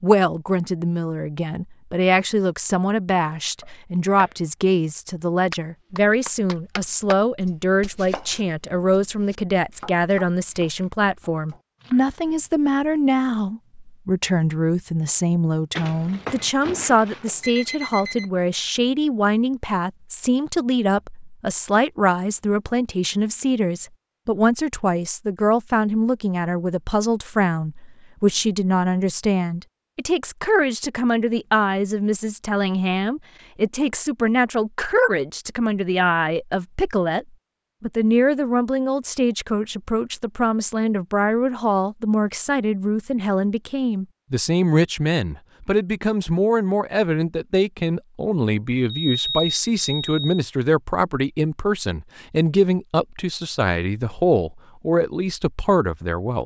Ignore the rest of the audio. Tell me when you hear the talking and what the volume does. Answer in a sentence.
You can hear the talking from 0.0 to 56.4 s, at a steady volume.